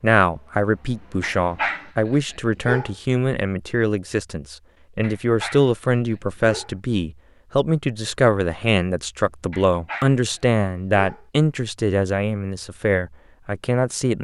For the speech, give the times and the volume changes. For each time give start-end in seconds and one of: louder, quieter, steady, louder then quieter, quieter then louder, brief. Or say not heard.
0.0-14.1 steady.